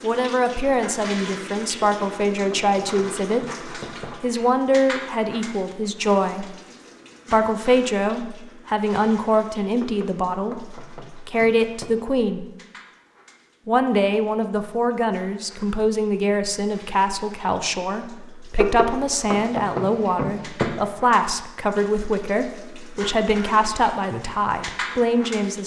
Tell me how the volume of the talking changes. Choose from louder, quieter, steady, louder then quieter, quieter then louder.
steady.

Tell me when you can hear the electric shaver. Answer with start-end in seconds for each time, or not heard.
not heard.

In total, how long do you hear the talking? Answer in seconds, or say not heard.
24 s.